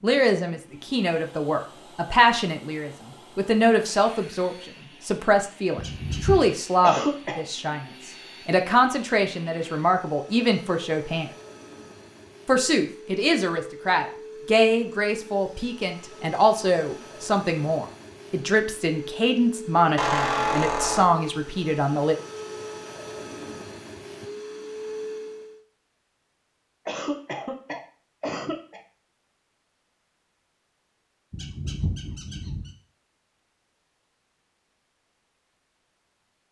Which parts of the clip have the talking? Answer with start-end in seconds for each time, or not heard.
0.0-11.3, 12.4-22.1.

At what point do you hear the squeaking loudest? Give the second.
20 s.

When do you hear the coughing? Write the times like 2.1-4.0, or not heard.
6.8-7.5, 26.9-28.8.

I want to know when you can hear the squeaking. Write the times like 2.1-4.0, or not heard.
5.8-6.5, 19.9-21.1, 31.3-32.7.